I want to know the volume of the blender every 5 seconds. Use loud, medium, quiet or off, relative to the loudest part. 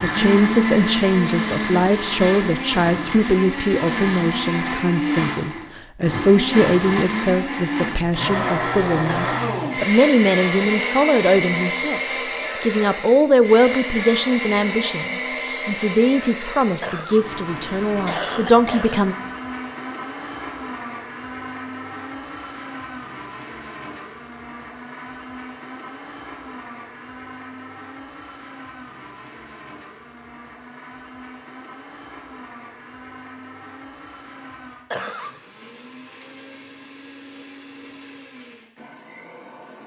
loud, loud, loud, medium, medium, quiet, quiet, quiet.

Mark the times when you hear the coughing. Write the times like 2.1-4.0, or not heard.
9.1-9.5, 16.8-17.2, 18.1-19.0, 34.9-35.4.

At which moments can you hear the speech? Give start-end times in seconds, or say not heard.
0.0-12.0, 12.6-19.1.